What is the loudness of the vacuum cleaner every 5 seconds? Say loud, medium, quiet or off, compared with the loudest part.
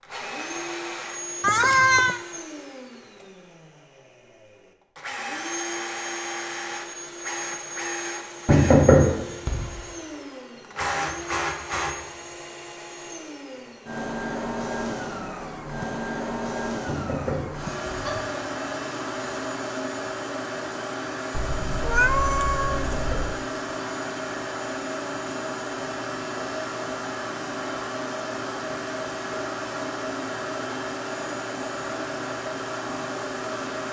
medium, loud, loud, loud, loud, loud, loud.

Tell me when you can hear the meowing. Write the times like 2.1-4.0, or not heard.
1.4-2.2, 21.3-23.4.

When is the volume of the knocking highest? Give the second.
9 s.